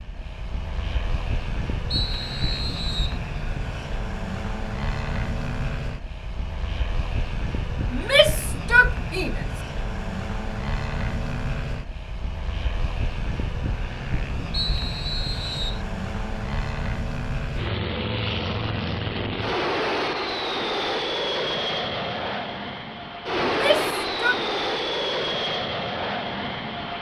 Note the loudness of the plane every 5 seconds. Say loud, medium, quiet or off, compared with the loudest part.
medium, medium, medium, loud, loud, loud.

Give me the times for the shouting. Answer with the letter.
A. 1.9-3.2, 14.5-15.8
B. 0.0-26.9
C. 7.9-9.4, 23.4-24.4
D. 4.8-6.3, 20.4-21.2
C.